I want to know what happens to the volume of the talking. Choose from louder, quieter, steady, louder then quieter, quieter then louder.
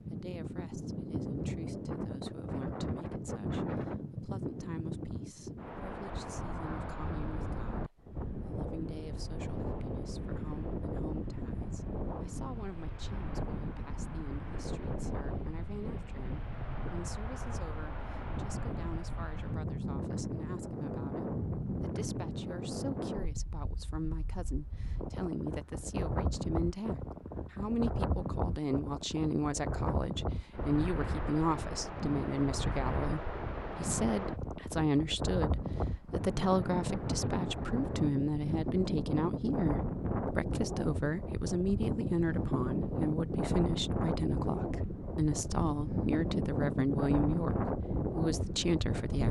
louder.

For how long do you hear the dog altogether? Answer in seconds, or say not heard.
not heard.